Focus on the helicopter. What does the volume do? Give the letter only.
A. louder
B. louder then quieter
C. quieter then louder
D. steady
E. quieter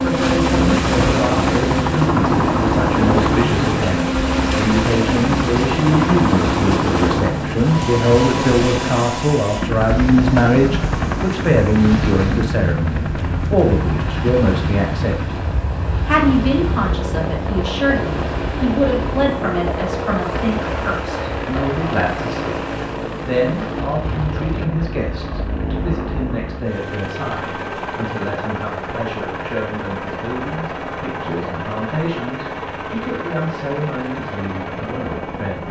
E.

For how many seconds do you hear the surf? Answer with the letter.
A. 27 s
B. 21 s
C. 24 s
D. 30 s
C.